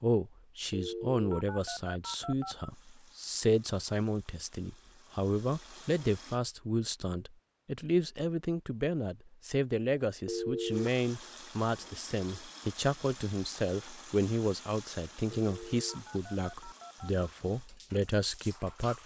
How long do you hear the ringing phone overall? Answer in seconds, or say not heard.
4 s.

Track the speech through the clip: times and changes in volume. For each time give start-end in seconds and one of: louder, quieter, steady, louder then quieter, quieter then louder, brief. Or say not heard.
0.0-19.0 steady.